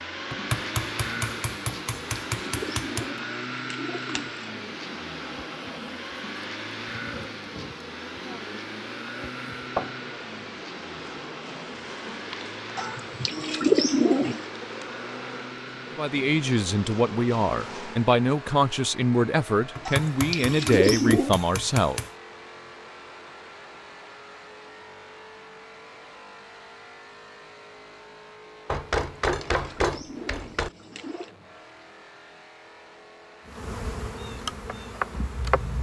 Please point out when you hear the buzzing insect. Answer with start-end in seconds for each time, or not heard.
4.5-18.1, 33.5-35.7.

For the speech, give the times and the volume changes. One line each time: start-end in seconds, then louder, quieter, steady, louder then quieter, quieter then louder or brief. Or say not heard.
15.9-22.0 steady.